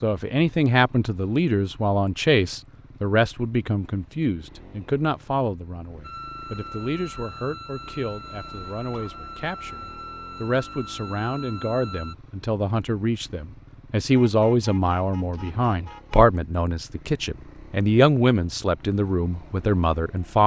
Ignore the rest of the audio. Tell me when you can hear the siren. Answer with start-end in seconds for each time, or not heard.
6.0-12.2.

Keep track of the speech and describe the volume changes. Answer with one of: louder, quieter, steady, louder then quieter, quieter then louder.
quieter then louder.